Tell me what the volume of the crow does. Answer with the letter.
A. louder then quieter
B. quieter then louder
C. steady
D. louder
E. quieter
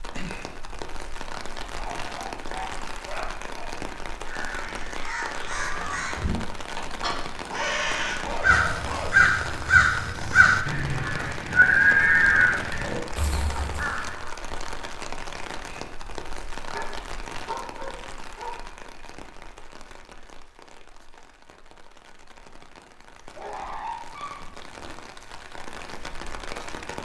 D.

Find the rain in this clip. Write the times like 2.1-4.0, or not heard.
0.0-27.0.